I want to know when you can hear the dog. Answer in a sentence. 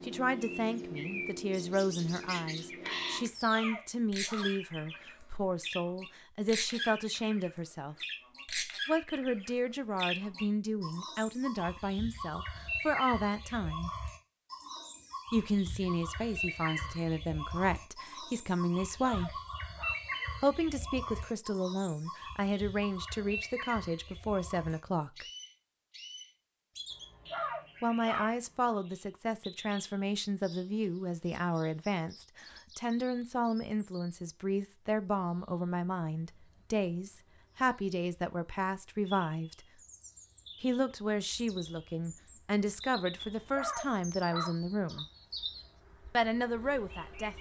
The dog can be heard from 3.1 to 5.0 s, from 18.9 to 19.9 s, from 26.9 to 28.8 s and from 43.1 to 45.0 s.